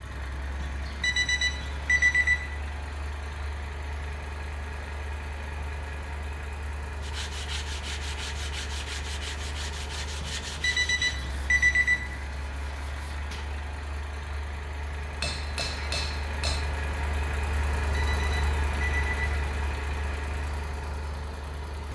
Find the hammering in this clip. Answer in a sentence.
You can hear the hammering from 15.2 to 16.7 s.